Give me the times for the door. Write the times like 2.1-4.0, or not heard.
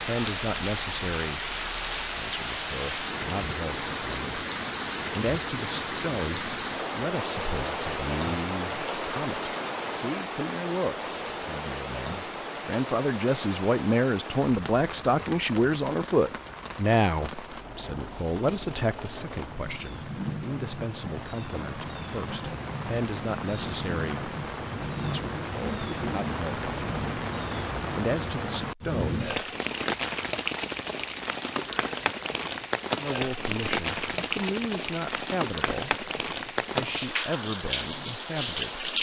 not heard.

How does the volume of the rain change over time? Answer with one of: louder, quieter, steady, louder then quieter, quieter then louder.
quieter then louder.